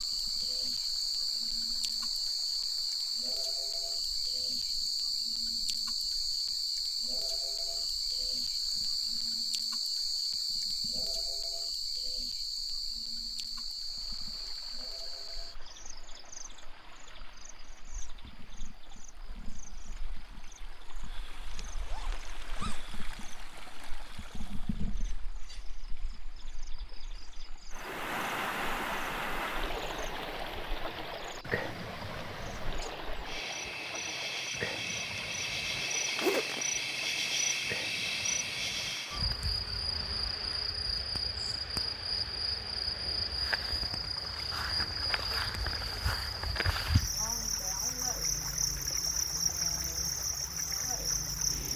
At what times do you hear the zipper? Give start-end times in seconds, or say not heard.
21.6-22.9, 36.2-36.6.